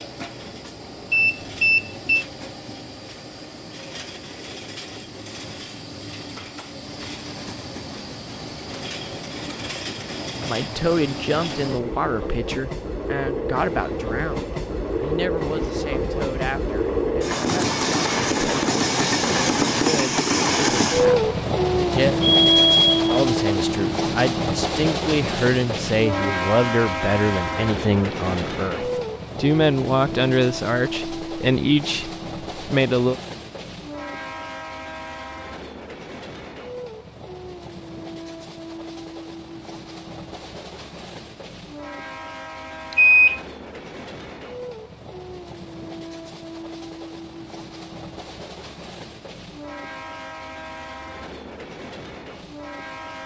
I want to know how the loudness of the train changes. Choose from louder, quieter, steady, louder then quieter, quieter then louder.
louder then quieter.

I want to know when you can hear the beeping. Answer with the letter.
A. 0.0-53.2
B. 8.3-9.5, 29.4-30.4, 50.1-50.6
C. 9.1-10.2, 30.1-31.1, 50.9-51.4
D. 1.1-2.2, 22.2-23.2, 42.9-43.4
D.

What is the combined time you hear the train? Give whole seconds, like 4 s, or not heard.
53 s.